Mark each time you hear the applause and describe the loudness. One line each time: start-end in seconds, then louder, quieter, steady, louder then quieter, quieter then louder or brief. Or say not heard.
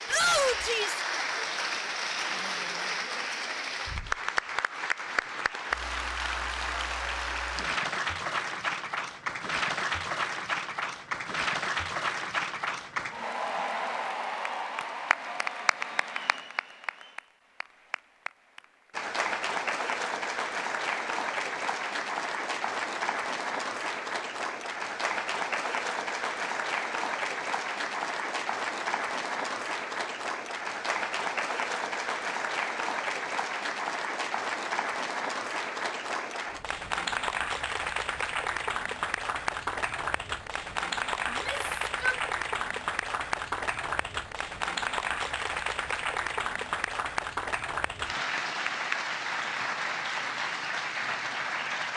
0.0-51.9 steady.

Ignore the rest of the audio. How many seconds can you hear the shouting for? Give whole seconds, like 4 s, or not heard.
2 s.